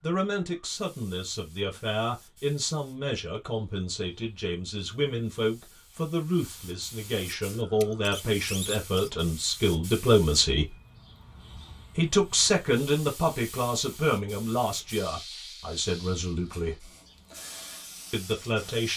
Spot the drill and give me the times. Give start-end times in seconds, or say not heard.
not heard.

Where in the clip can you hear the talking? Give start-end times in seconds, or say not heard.
0.0-10.7, 11.9-16.9, 18.1-18.9.